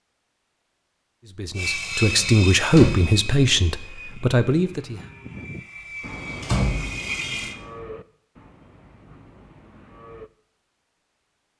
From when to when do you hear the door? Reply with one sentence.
You can hear the door from 2.1 to 3.1 s and from 6.4 to 7.3 s.